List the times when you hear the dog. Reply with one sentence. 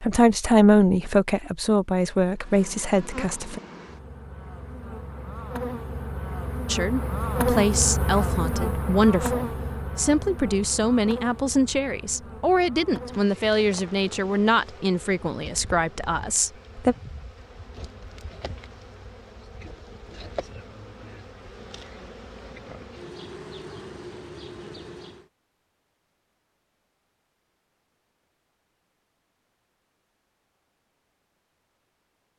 The dog can't be heard in this clip.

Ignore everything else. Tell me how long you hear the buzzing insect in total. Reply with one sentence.
The buzzing insect can be heard for 23 seconds in total.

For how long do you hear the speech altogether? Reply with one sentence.
The speech can be heard for 14 seconds in total.